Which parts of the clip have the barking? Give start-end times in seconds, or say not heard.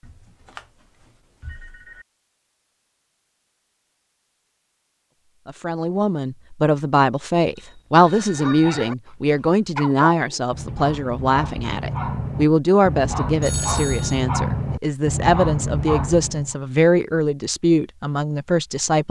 8.3-16.6.